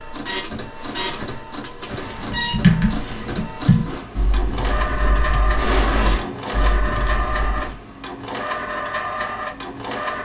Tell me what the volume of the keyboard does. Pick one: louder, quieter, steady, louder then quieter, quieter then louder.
quieter.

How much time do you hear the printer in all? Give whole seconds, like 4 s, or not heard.
10 s.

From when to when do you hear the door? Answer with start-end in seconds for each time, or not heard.
0.8-3.5, 5.5-6.8.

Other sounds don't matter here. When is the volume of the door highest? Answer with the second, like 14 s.
6 s.